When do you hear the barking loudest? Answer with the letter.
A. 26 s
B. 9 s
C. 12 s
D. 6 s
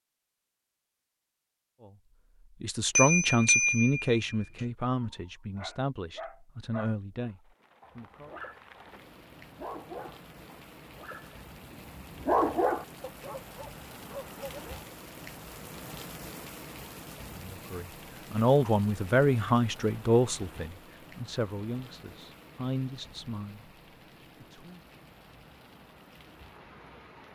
C.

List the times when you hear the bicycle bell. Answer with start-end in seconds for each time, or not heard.
3.0-4.3.